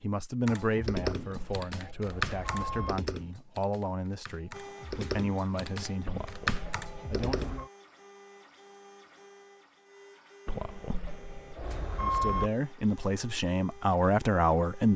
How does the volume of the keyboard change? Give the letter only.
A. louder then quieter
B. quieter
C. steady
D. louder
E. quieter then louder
E.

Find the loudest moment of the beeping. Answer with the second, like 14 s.
12 s.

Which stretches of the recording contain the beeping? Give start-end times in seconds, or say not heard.
1.1-3.0, 6.0-7.7, 10.4-12.5.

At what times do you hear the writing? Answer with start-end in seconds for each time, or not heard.
not heard.